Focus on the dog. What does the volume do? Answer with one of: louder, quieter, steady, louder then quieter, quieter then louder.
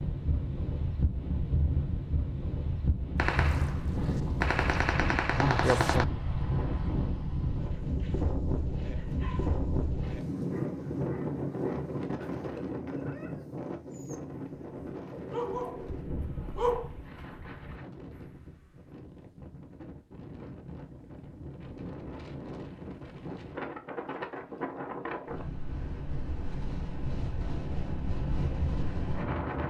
louder.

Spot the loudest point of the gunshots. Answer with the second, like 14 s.
6 s.